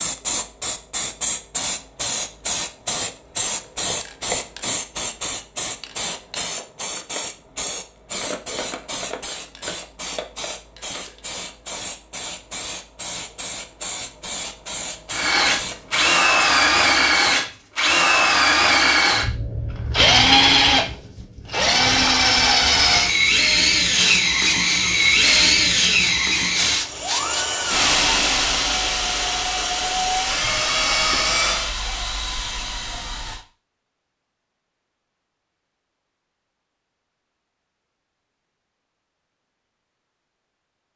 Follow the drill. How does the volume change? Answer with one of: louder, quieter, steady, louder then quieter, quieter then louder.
quieter.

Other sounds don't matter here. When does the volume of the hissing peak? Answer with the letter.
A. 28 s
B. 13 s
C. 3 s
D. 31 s
A.